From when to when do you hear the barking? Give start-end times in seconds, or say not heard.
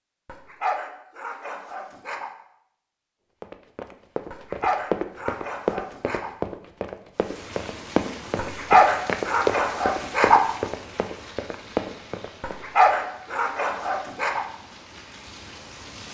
0.2-2.3, 4.3-6.3, 8.3-10.4, 12.4-14.4.